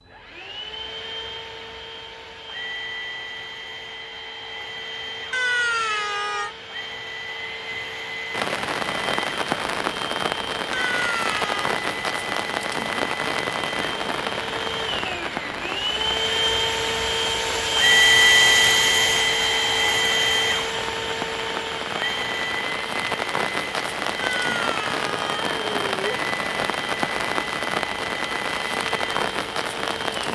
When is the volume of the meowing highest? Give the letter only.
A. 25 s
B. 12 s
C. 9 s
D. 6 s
D.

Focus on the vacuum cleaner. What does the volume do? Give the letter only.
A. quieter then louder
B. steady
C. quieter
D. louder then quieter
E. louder
D.